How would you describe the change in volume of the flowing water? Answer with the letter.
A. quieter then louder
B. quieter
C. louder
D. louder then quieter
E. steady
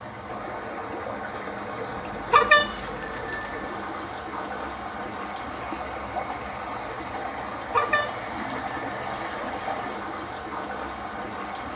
E.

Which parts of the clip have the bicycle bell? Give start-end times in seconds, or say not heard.
2.3-3.8, 7.7-9.0.